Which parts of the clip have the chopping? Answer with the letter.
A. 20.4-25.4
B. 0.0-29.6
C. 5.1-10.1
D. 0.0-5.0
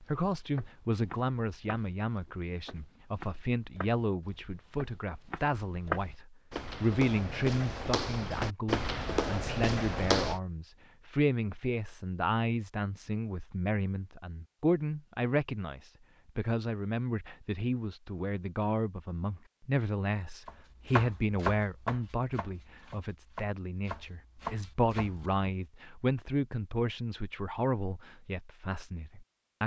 A.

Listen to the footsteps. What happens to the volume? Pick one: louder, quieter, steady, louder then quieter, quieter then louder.
louder.